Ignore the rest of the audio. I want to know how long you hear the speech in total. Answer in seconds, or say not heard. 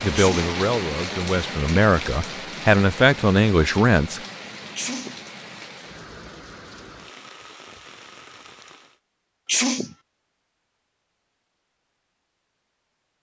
4 s.